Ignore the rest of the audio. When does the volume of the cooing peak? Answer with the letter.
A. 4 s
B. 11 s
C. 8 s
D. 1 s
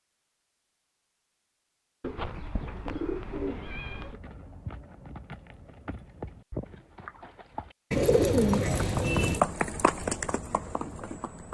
C.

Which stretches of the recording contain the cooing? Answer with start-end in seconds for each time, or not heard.
2.0-4.2, 7.9-9.4.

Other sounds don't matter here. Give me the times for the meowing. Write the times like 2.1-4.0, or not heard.
3.5-4.1.